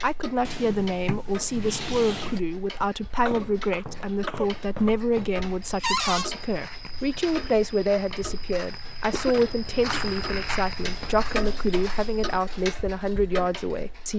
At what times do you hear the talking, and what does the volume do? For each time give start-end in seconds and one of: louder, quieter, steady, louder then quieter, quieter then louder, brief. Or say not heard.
0.0-14.1 steady.